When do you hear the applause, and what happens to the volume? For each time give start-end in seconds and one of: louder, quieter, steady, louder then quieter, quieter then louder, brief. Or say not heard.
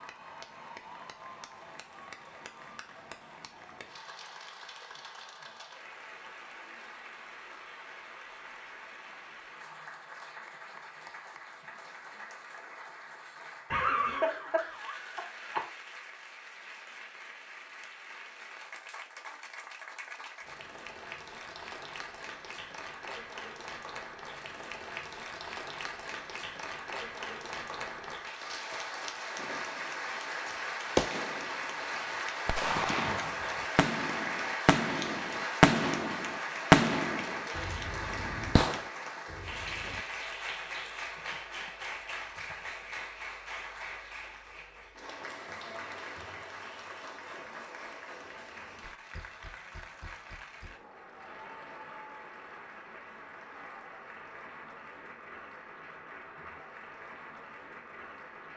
0.0-58.5 louder then quieter.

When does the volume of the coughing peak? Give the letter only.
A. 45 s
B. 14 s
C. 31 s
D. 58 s
B.